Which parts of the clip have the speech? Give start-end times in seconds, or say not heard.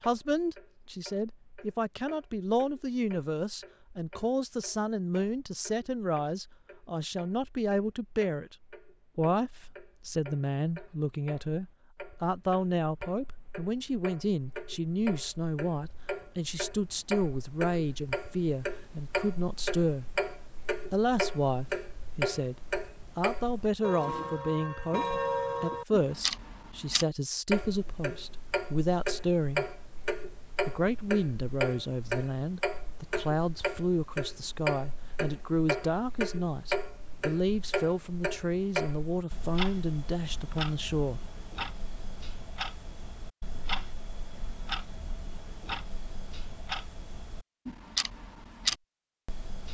0.1-8.6, 9.2-20.1, 20.9-22.6, 23.1-29.6, 30.6-41.2.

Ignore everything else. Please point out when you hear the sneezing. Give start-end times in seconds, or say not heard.
not heard.